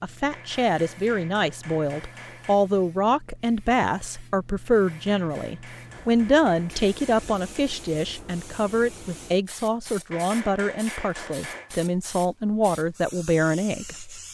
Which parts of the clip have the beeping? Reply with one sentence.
You can't hear the beeping here.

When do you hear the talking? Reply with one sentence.
You can hear the talking from 0.0 to 14.2 s.